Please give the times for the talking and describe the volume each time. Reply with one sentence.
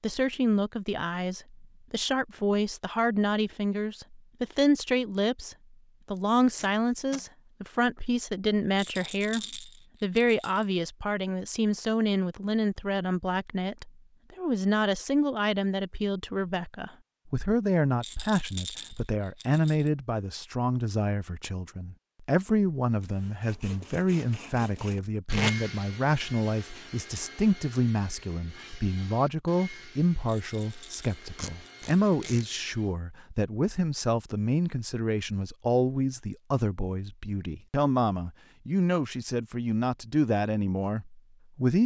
The talking can be heard from 0.0 to 41.8 s, at a steady volume.